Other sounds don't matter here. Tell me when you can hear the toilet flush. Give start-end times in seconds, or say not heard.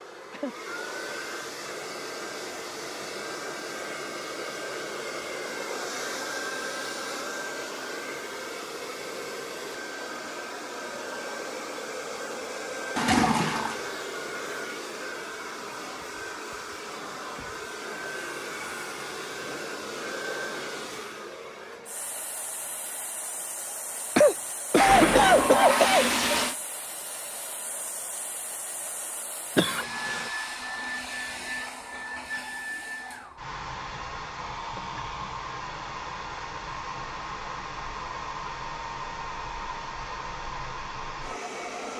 12.9-13.9, 24.8-26.6.